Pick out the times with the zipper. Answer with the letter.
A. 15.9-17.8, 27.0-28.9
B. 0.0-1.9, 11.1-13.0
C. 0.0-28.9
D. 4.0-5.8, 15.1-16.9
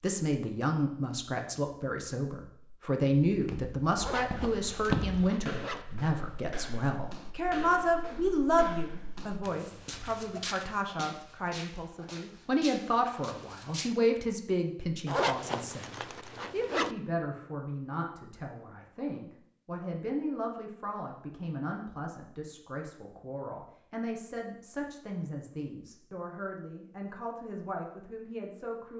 D.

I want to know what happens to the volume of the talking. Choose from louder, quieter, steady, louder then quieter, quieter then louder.
quieter.